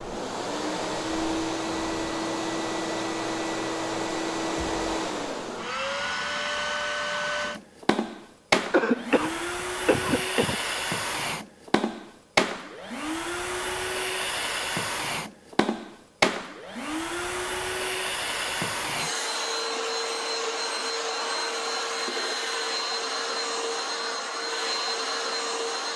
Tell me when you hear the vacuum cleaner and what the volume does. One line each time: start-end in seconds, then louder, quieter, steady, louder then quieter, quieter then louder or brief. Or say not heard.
0.0-25.9 steady.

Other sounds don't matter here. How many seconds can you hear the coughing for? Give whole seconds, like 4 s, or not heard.
2 s.